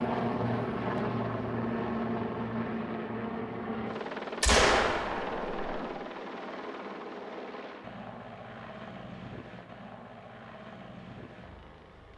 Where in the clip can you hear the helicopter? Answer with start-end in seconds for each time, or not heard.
0.0-12.1.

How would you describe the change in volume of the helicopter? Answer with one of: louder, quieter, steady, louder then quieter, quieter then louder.
quieter.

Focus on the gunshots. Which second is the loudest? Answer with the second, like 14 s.
5 s.